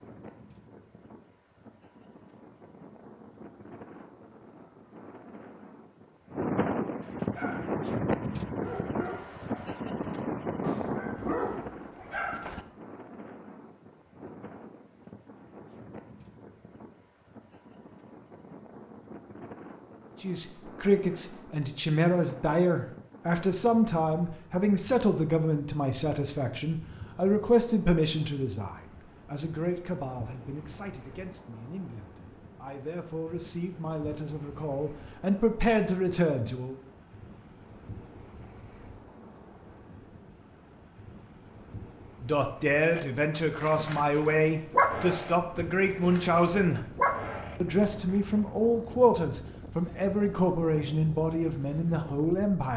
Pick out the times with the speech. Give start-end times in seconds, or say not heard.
20.2-36.8, 42.2-46.8, 47.6-52.7.